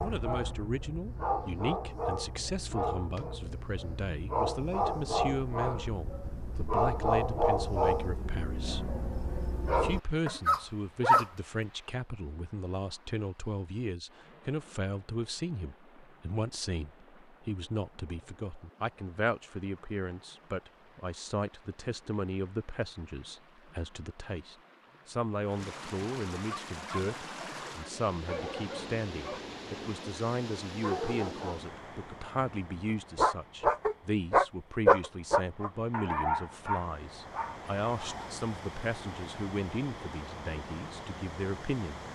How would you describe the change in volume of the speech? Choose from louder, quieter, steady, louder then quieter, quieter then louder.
steady.